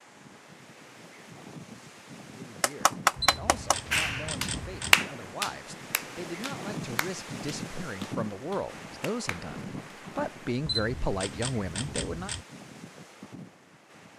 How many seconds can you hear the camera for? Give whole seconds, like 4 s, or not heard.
4 s.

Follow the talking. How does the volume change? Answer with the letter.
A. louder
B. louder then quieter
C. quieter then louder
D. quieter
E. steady
A.